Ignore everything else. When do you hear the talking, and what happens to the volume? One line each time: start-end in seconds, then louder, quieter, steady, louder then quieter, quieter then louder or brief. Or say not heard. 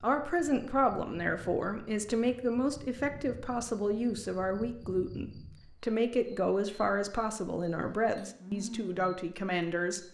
0.0-10.0 steady.